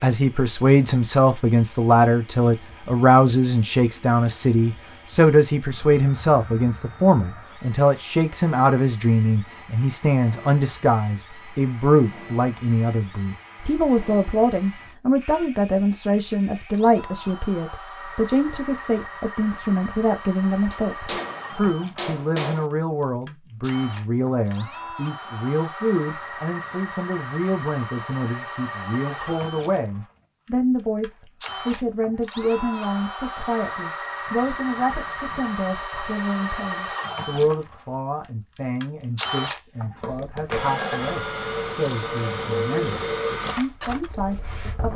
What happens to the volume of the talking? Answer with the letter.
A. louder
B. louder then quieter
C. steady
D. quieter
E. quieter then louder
D.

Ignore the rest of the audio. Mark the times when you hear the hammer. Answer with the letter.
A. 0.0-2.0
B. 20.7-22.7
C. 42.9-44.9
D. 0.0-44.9
B.